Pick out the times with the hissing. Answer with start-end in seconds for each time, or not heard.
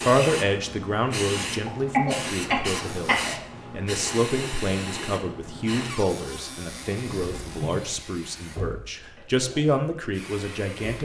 0.0-10.9.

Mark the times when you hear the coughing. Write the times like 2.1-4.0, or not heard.
1.6-3.4, 7.0-8.0.